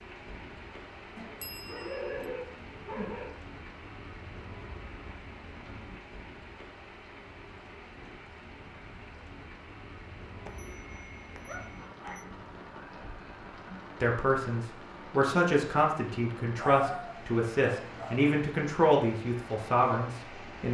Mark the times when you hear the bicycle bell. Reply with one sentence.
You can hear the bicycle bell from 1.4 to 2.0 s and from 10.4 to 12.2 s.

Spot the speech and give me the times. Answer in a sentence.
The speech can be heard from 14.0 to 20.6 s.